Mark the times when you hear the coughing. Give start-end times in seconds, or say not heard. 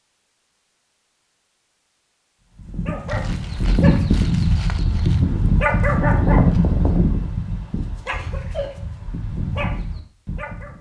8.1-8.8.